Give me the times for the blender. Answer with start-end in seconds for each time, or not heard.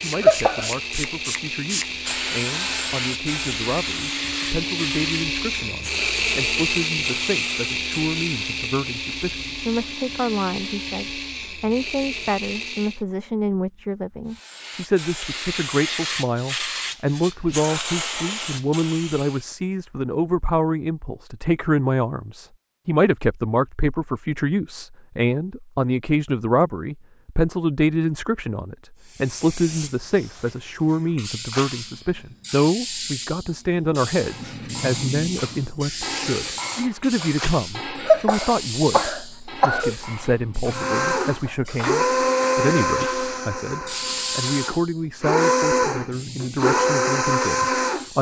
0.0-13.1, 40.7-48.0.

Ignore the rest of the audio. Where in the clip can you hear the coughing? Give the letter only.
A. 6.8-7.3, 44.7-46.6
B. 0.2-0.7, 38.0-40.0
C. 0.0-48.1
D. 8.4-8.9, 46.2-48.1
B.